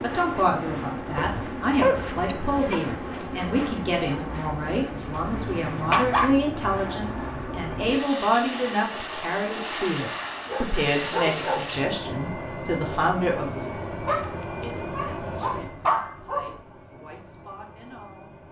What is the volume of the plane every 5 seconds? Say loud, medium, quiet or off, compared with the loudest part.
loud, loud, loud, medium.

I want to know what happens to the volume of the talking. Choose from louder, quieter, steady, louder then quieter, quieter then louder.
quieter.